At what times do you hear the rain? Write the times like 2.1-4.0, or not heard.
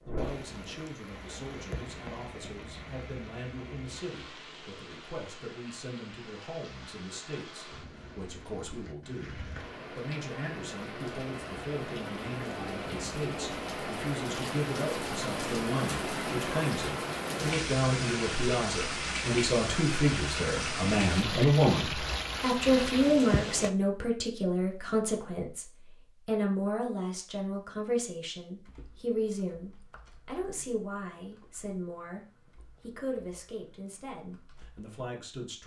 0.0-23.7.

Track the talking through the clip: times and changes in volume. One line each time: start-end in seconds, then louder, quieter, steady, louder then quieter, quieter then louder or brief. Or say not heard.
0.1-35.6 louder then quieter.